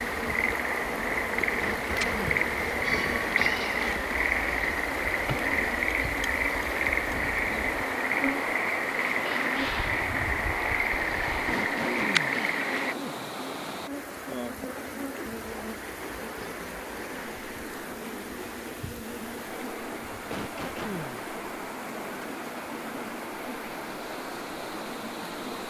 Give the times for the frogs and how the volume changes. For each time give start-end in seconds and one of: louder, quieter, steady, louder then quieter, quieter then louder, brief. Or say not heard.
0.0-12.9 steady.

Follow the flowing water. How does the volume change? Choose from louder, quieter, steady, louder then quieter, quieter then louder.
steady.